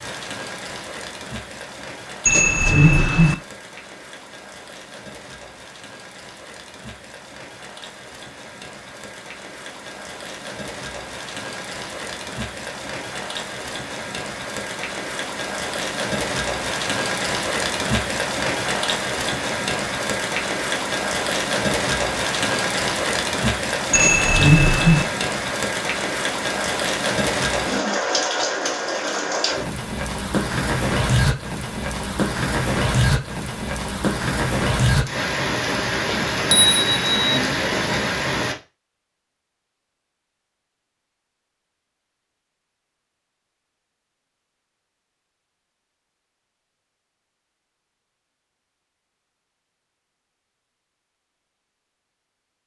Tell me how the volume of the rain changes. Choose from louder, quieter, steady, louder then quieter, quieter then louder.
louder.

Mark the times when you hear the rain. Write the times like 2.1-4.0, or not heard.
0.0-38.5.